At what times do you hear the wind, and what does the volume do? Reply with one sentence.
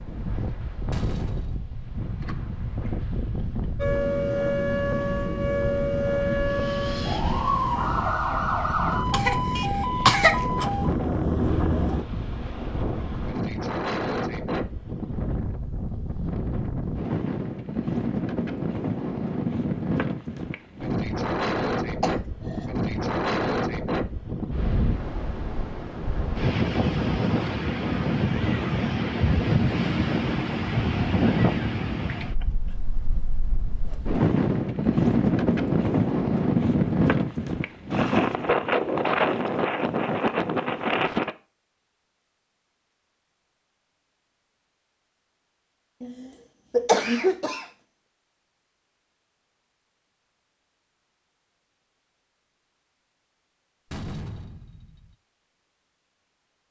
You can hear the wind from 0.0 to 41.4 s, getting louder.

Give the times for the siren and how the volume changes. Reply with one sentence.
The siren can be heard from 3.8 to 12.1 s, at a steady volume.